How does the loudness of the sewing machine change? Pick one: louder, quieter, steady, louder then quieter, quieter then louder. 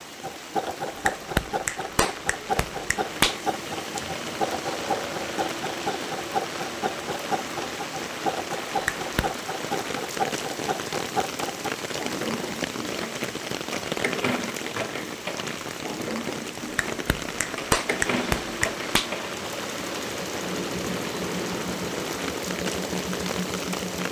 steady.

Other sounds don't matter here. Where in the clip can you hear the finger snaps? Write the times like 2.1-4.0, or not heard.
0.8-3.4, 8.7-9.3, 16.6-19.1.